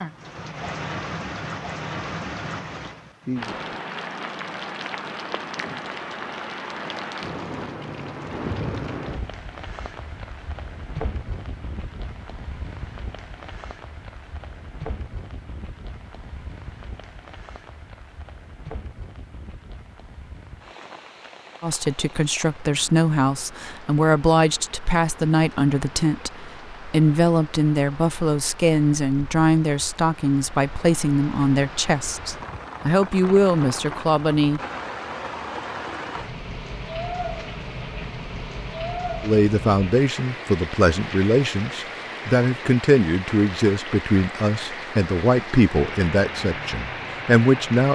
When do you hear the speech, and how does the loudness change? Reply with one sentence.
You can hear the speech from 21.6 to 34.6 s, at a steady volume; and from 39.2 to 47.8 s, at a steady volume.